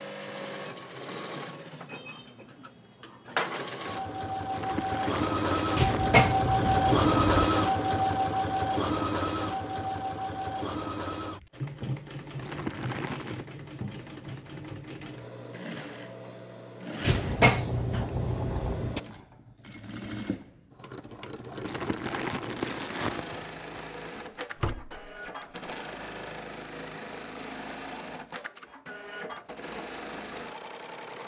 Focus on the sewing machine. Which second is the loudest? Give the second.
7 s.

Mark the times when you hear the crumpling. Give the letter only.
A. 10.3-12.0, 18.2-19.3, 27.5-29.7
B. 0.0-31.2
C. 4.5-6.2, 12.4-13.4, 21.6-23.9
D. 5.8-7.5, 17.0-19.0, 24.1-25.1
C.